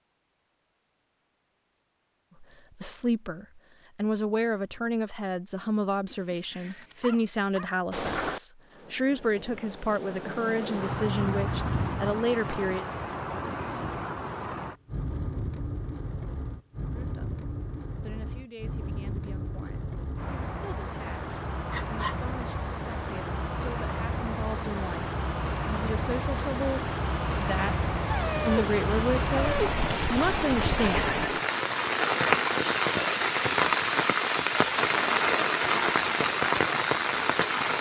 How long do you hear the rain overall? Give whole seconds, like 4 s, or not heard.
30 s.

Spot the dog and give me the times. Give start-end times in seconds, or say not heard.
6.0-7.8, 21.7-22.1, 28.0-29.7.